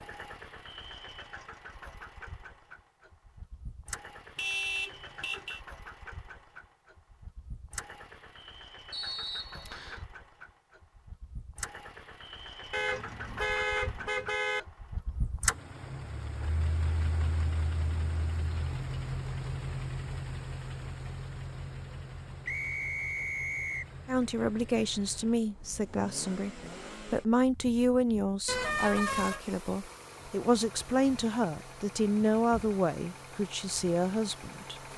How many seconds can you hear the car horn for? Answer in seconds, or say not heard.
4 s.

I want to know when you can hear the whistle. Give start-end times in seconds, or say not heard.
8.9-10.1, 22.4-23.9.